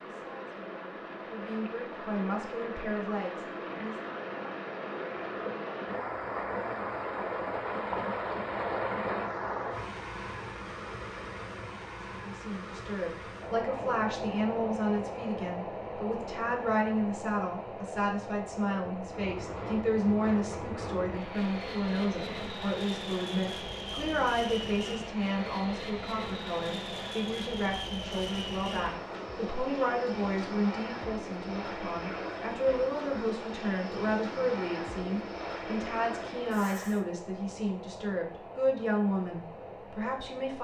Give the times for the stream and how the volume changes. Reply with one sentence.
The stream can be heard from 0.0 to 40.5 s, getting quieter.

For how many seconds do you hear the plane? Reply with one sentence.
The plane can be heard for 18 seconds in total.